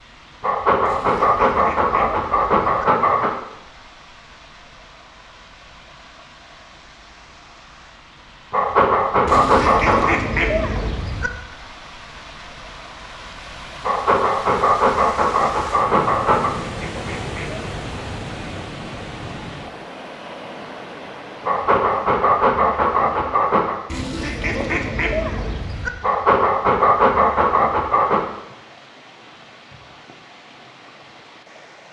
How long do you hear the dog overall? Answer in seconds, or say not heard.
12 s.